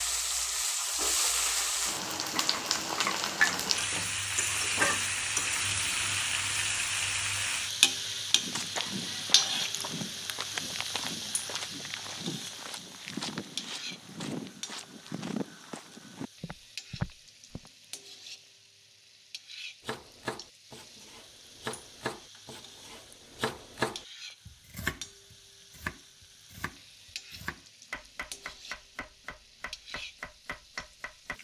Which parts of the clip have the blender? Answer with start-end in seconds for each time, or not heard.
not heard.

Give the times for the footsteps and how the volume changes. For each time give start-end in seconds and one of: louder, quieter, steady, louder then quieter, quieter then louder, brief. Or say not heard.
8.3-17.7 steady.